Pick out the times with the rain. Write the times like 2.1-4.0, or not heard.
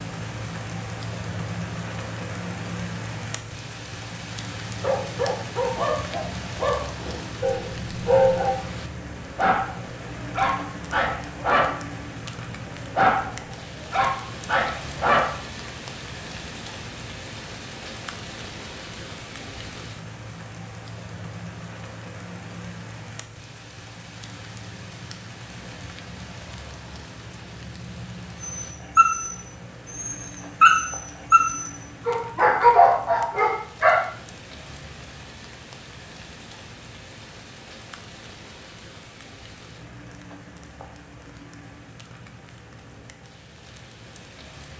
0.0-44.7.